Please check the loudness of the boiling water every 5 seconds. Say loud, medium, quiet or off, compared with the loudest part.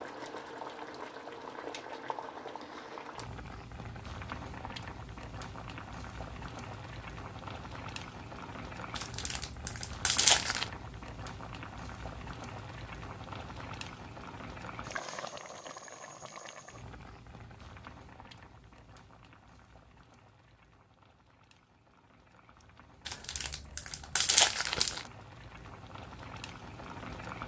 loud, loud, loud, medium, quiet, loud.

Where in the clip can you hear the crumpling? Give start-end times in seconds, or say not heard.
8.9-10.7, 23.1-25.1.